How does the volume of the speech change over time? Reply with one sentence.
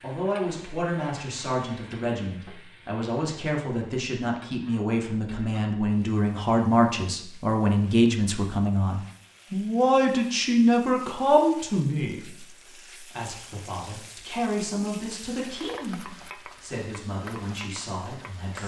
The loudness of the speech goes up, then down.